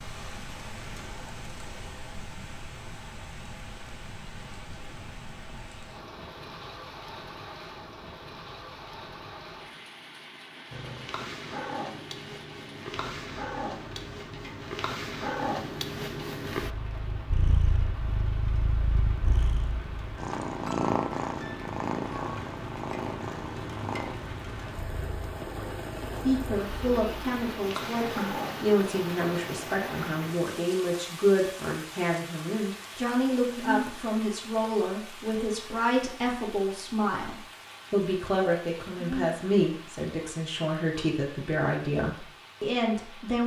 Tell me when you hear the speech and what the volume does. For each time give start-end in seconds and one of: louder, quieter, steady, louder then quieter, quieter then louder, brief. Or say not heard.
26.2-43.4 steady.